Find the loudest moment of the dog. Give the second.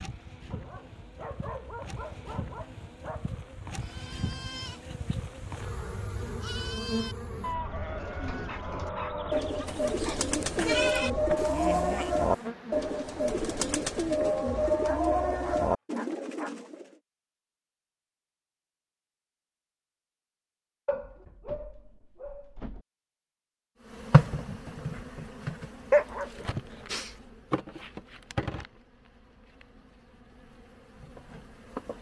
26 s.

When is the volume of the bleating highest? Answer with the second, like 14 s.
11 s.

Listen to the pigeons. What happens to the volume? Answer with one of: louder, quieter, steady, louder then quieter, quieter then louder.
louder.